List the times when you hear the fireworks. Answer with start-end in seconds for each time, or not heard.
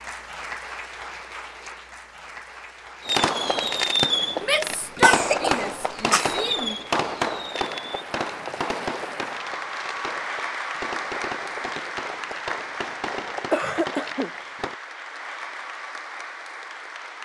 3.0-14.8.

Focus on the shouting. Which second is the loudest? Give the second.
5 s.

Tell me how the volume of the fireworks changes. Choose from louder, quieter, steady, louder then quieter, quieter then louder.
quieter.